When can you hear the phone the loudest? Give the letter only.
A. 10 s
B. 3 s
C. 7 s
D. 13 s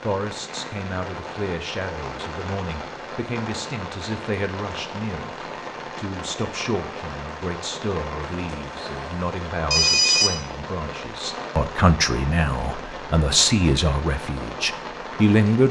A.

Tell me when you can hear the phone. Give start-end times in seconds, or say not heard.
8.5-10.3.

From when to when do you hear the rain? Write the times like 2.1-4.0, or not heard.
0.0-15.6.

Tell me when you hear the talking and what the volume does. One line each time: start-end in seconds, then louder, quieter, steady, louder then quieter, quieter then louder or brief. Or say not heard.
0.0-15.6 louder.